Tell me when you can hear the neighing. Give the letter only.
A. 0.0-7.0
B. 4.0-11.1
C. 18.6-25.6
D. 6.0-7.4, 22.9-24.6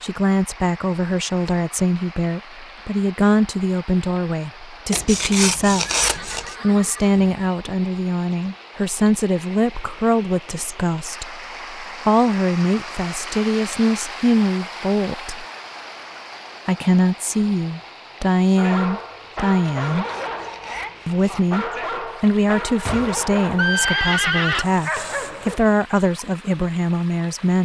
D.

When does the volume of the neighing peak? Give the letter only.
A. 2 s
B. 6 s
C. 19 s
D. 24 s
D.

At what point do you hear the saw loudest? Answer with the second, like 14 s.
6 s.